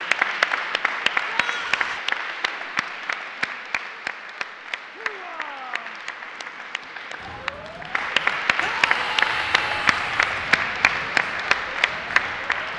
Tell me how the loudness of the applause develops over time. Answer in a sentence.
The loudness of the applause goes down, then up.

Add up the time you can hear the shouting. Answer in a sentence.
You can hear the shouting for 3 seconds altogether.